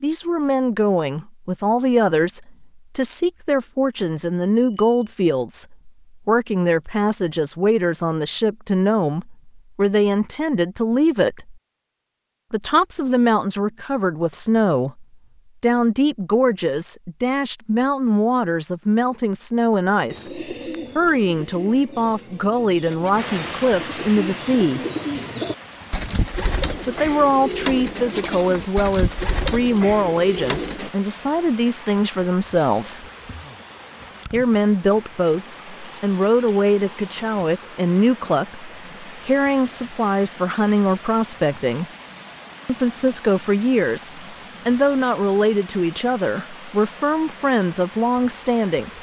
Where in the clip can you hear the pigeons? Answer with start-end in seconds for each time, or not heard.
20.1-30.9.